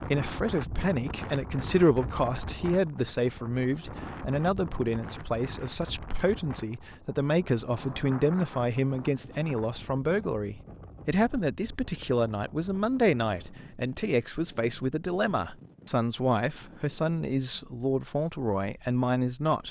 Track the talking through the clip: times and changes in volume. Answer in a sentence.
You can hear the talking from 0.0 to 19.6 s, at a steady volume.